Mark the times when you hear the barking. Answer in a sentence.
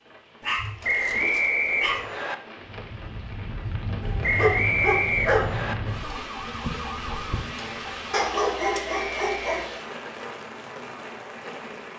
The barking can be heard from 0.4 to 2.1 s, from 4.0 to 5.6 s and from 8.1 to 9.8 s.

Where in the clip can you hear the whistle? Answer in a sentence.
You can hear the whistle from 0.8 to 2.4 s, from 4.2 to 5.8 s and from 8.8 to 10.1 s.